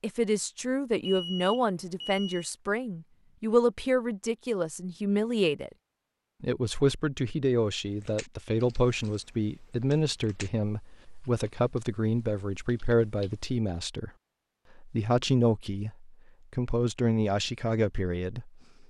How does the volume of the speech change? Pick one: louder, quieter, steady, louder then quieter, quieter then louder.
steady.